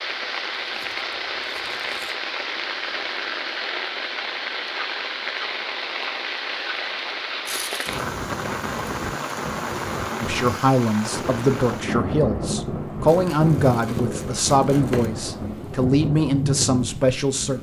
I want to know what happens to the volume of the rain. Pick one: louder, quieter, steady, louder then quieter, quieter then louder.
steady.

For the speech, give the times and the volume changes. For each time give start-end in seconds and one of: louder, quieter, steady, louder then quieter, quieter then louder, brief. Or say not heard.
10.2-17.5 steady.